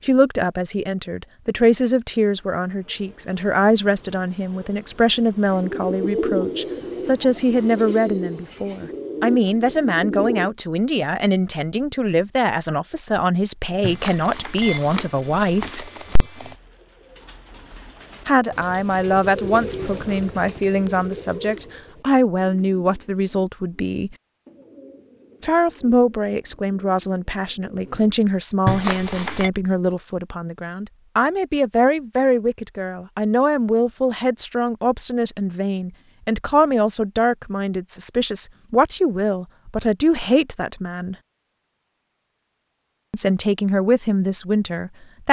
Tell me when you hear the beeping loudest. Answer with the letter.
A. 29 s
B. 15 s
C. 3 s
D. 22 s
A.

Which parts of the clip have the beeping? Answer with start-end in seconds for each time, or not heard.
13.8-16.6, 28.6-29.5.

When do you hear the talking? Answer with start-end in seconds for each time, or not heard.
0.0-15.9, 18.2-24.1, 25.4-41.1, 43.1-45.2.